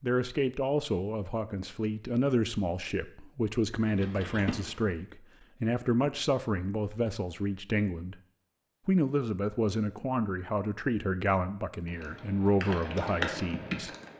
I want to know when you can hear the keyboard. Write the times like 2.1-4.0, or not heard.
3.8-5.0, 11.8-14.1.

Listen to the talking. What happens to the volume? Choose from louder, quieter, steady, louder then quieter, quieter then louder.
steady.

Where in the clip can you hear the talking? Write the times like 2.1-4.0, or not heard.
0.0-8.2, 8.8-13.9.